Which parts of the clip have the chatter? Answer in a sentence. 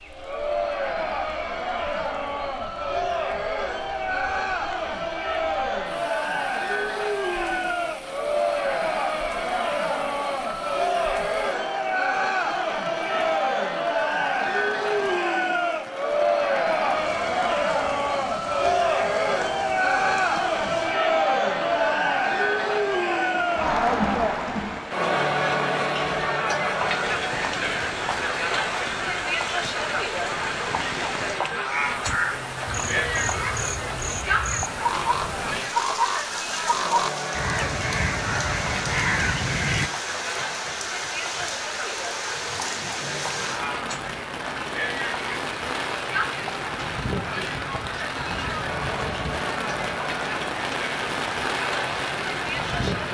You can hear the chatter from 0.1 to 53.0 s.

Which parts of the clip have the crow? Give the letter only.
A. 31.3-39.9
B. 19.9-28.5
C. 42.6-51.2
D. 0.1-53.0
A.